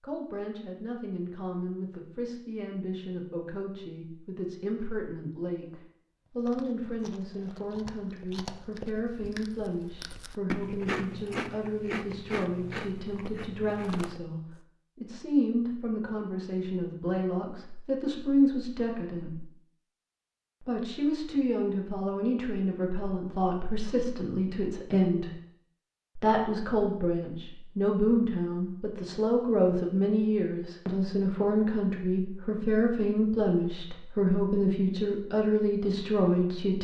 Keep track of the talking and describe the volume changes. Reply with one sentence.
The volume of the talking goes up.